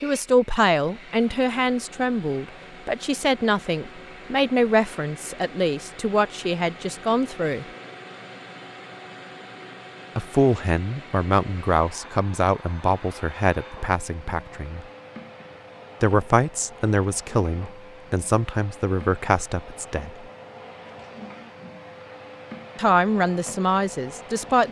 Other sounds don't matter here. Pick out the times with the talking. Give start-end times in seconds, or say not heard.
0.0-7.7, 10.2-14.8, 16.0-20.1, 22.8-24.6.